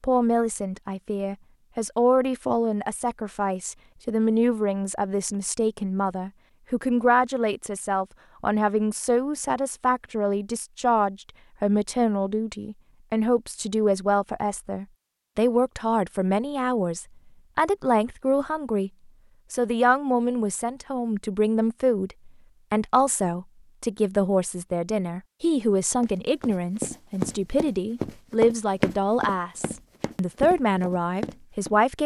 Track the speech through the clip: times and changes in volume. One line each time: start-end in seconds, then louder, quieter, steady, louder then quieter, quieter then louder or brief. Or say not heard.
0.0-18.9 steady
19.5-32.0 steady.